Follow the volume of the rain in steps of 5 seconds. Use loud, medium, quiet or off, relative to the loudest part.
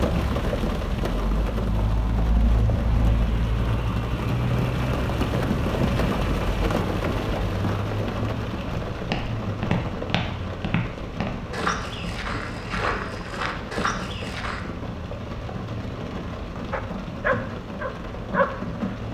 loud, loud, medium, medium.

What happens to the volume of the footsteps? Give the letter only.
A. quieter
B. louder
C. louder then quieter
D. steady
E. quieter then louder
D.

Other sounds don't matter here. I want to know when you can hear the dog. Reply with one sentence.
You can hear the dog from 16.7 to 18.9 s.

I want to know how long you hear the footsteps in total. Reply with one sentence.
The footsteps can be heard for 6 seconds in total.